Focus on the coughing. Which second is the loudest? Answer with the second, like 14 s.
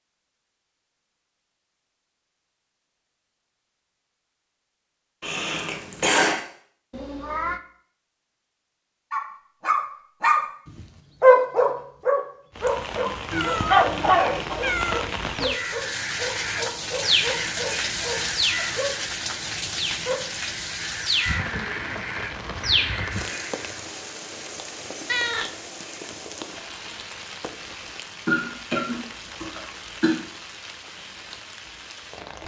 6 s.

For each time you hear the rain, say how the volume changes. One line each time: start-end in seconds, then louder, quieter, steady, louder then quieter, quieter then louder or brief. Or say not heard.
12.5-32.4 quieter.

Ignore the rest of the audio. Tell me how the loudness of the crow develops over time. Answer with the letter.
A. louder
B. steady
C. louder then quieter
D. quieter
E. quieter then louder
E.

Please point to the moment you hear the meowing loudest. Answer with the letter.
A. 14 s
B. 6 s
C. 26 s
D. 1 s
A.